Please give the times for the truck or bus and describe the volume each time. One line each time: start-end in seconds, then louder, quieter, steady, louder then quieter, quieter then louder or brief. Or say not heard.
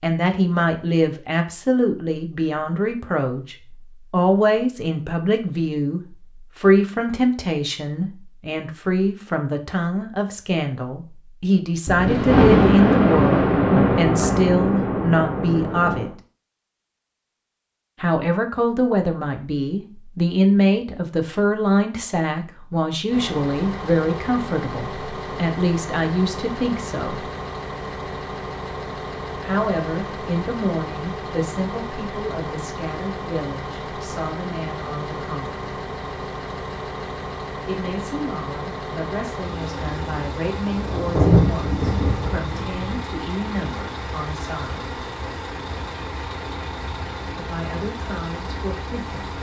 23.1-49.3 steady.